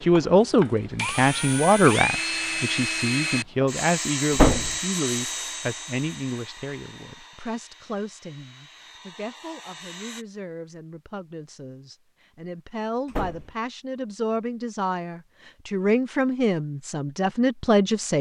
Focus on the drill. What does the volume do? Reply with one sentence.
The loudness of the drill goes down.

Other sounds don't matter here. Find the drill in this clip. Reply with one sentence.
The drill can be heard from 0.0 to 10.2 s.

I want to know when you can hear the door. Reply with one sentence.
You can hear the door from 4.3 to 4.8 s and from 13.1 to 13.5 s.